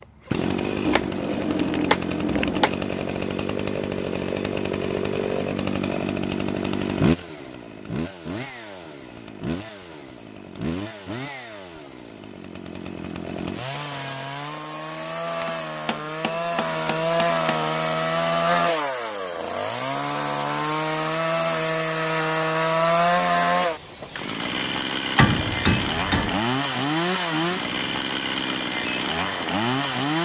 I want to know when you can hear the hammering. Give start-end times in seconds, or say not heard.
0.8-2.8, 15.4-17.4, 25.1-26.4.